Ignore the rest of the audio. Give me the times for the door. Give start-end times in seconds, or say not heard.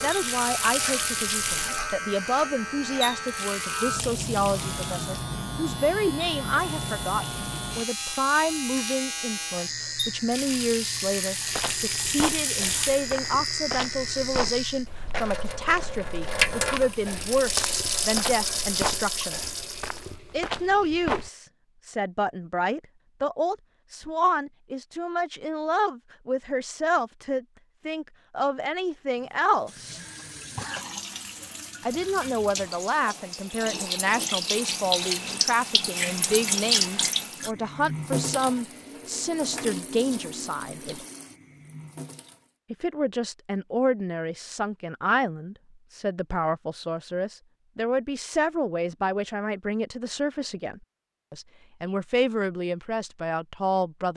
not heard.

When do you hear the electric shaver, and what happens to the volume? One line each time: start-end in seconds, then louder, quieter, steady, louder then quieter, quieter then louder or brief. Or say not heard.
0.0-14.8 steady.